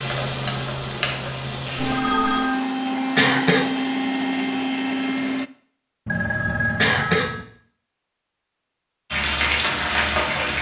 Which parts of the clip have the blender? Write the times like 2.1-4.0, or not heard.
1.8-5.5.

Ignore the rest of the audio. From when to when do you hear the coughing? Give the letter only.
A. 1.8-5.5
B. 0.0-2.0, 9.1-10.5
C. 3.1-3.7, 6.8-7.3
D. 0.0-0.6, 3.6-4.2
C.